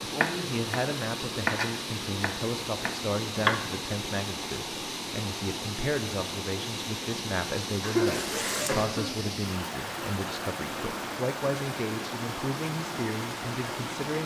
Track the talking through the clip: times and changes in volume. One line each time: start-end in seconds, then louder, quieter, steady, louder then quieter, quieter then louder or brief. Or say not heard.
0.0-14.2 steady.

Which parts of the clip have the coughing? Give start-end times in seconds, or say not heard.
7.8-9.1.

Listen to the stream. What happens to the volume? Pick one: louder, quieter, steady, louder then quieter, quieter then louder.
steady.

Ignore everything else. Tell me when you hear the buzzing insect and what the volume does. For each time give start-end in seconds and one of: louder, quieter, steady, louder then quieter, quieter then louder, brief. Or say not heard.
not heard.